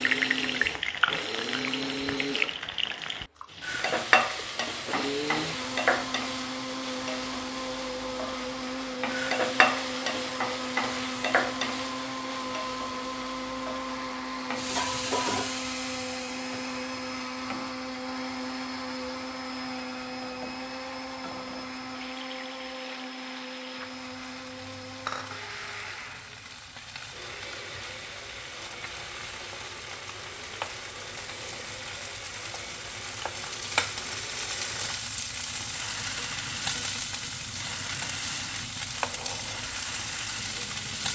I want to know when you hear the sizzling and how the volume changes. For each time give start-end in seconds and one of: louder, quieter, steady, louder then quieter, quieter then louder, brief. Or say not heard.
0.0-41.1 quieter then louder.